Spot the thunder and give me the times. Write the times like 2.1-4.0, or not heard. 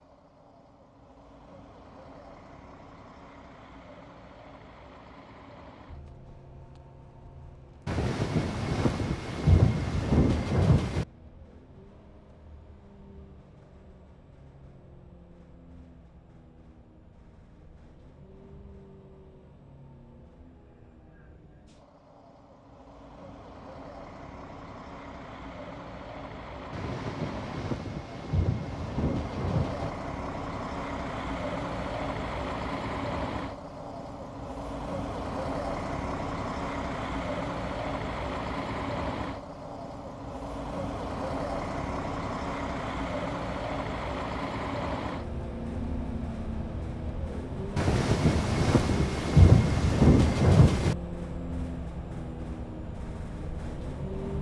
7.8-11.1, 26.7-29.9, 47.8-51.0.